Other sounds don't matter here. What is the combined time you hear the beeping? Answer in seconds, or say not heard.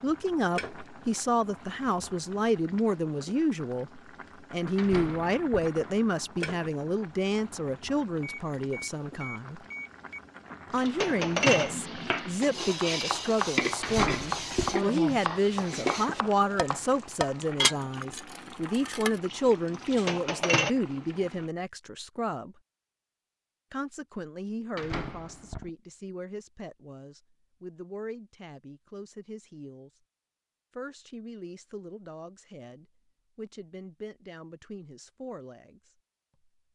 2 s.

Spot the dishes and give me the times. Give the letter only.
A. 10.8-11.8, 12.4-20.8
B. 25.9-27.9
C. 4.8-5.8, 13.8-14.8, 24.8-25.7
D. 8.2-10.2
A.